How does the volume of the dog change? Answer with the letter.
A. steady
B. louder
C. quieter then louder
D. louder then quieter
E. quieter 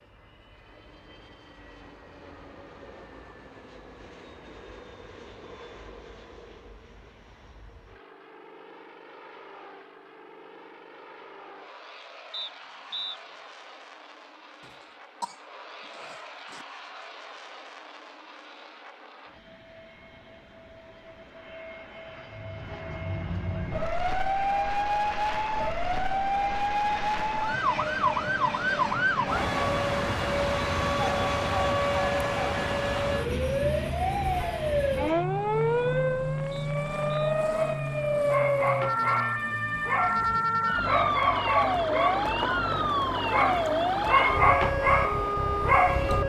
B.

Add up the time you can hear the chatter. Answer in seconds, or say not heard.
not heard.